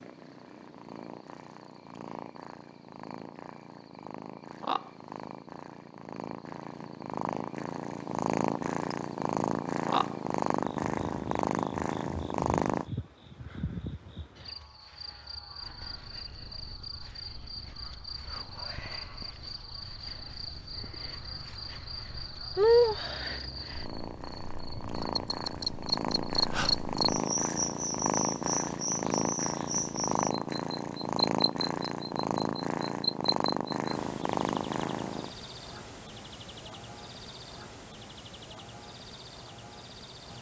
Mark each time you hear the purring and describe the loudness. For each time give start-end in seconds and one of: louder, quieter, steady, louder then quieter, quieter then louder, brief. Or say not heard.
0.0-12.9 louder
15.6-35.3 louder.